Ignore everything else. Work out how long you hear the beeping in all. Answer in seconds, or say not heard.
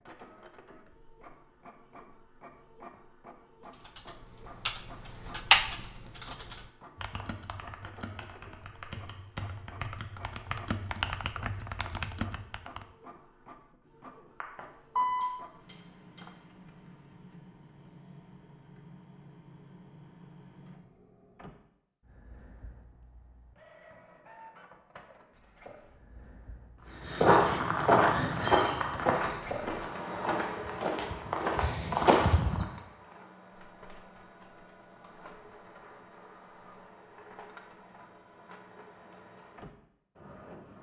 2 s.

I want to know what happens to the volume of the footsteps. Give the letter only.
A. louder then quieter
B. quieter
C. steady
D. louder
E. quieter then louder
E.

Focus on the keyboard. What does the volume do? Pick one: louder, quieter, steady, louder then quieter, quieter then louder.
quieter then louder.